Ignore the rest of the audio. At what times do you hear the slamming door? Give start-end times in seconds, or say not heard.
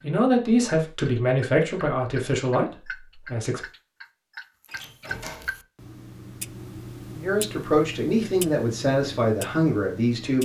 4.7-5.6.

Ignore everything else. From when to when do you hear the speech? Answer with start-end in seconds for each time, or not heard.
0.0-3.6, 7.2-10.4.